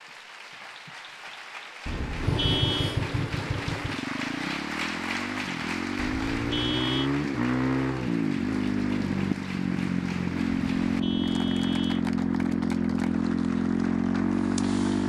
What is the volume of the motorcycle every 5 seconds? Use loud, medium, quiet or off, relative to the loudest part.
medium, loud, loud.